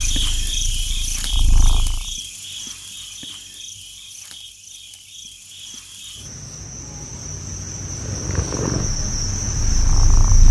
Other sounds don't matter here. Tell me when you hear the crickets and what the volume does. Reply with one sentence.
You can hear the crickets from 0.0 to 10.4 s, getting quieter then louder.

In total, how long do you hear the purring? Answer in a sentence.
You can hear the purring for 5 seconds altogether.